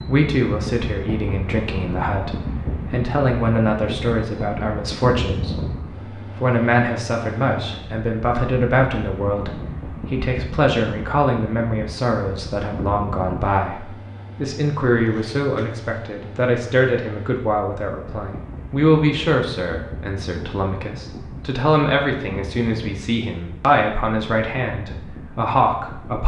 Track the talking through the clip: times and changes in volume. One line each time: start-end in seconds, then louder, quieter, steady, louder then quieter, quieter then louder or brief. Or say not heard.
0.1-26.2 steady.